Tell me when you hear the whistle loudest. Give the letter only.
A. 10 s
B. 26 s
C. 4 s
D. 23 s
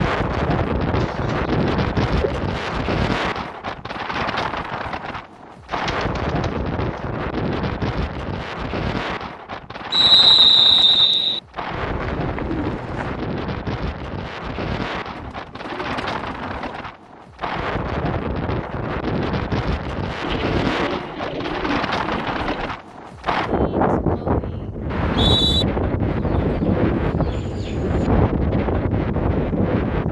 A.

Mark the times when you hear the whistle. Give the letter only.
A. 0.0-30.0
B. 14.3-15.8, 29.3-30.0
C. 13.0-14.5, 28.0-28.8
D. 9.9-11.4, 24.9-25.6
D.